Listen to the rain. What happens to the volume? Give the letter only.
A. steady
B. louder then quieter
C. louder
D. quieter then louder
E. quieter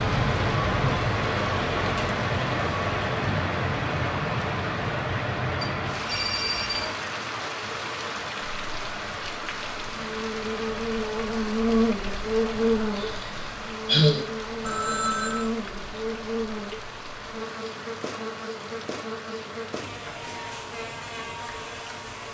E.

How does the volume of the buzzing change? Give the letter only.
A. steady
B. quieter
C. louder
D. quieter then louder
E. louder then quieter
B.